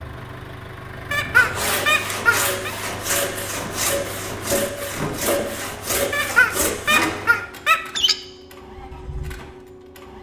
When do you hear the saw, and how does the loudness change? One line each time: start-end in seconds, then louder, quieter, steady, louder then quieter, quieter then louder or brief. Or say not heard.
1.4-7.2 steady.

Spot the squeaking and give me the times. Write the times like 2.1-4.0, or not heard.
1.1-2.7, 6.1-8.2.